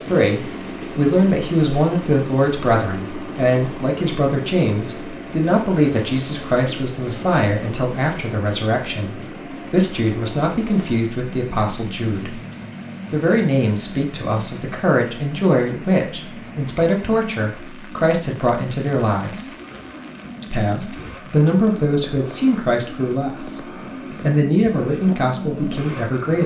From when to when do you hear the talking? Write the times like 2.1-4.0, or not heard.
0.0-12.4, 13.1-19.4, 20.4-23.6, 24.2-26.4.